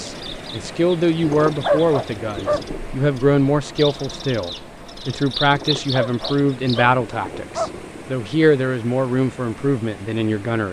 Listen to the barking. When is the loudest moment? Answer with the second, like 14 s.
2 s.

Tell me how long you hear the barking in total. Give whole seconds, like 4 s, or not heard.
4 s.